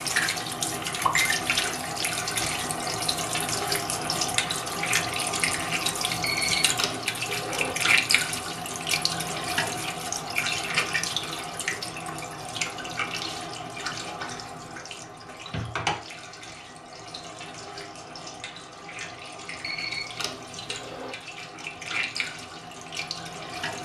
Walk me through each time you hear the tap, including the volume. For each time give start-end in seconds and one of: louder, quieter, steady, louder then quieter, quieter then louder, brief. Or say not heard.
0.0-23.8 quieter.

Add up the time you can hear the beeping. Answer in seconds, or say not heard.
3 s.